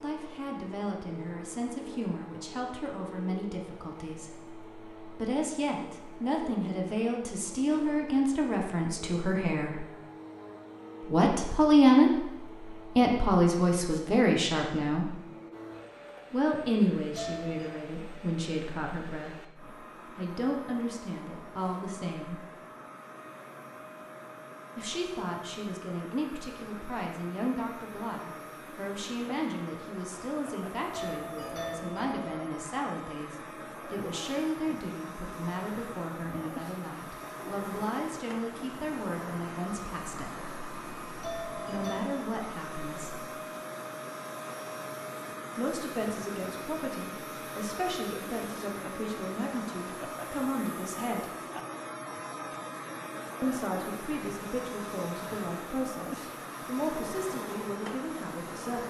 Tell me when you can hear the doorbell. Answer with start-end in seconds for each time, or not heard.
17.1-17.8, 30.9-32.5, 41.2-42.1.